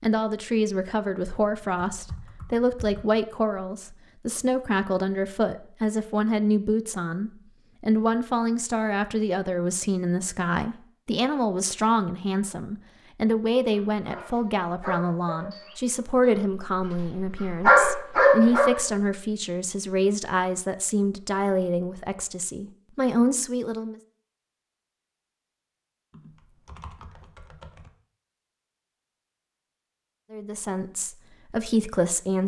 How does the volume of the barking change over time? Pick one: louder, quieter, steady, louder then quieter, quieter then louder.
quieter then louder.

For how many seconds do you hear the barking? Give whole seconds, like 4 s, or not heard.
5 s.